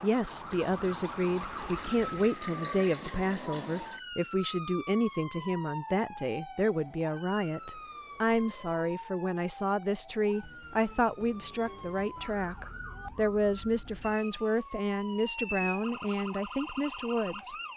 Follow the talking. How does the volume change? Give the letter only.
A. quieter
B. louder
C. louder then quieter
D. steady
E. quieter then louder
D.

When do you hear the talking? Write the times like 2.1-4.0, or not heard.
0.0-17.7.